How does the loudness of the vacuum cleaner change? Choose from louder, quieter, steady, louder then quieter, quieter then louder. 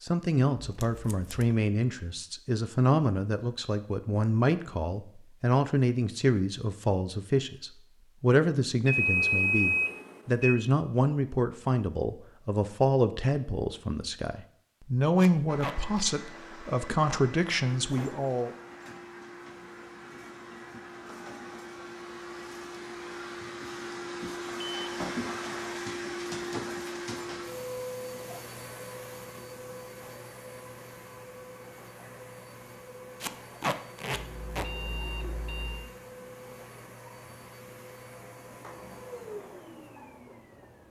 louder then quieter.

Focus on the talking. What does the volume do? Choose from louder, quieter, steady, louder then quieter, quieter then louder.
steady.